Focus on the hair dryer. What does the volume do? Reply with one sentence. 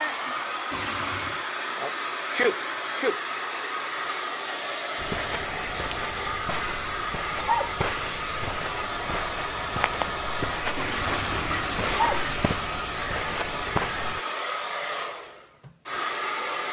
The loudness of the hair dryer stays about the same.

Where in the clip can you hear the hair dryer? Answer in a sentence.
You can hear the hair dryer from 0.0 to 16.6 s.